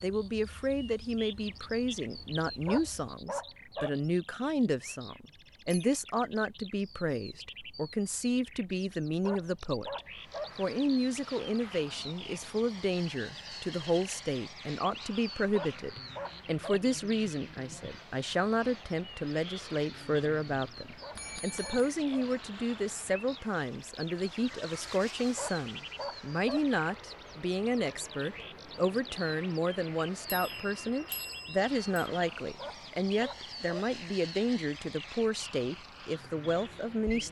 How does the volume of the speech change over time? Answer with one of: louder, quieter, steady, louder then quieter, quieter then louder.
steady.